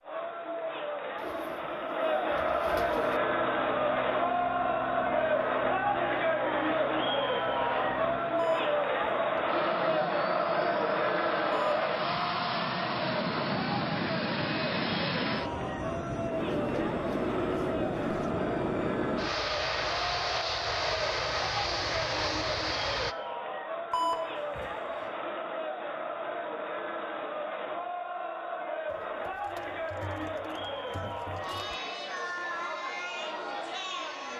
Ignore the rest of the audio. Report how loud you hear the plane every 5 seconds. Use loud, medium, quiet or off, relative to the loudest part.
medium, medium, loud, loud, loud, off, off.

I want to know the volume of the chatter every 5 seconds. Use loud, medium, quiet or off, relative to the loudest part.
loud, loud, loud, medium, medium, medium, medium.